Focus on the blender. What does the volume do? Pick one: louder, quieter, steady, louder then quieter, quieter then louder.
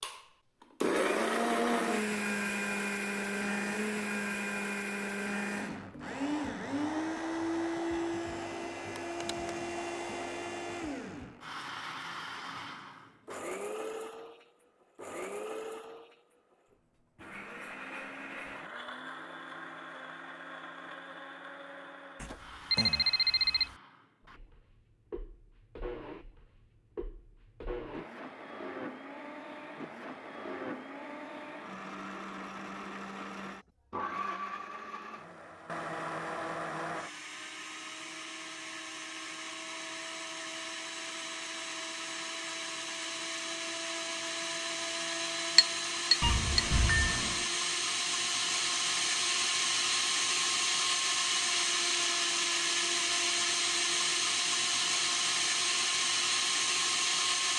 quieter then louder.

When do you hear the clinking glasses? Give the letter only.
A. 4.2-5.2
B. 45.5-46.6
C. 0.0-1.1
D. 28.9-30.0
B.